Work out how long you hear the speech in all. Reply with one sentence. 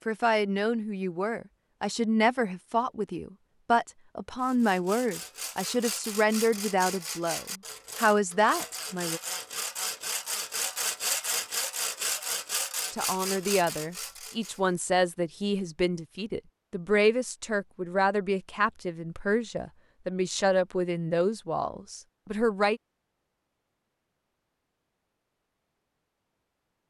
You can hear the speech for 19 seconds altogether.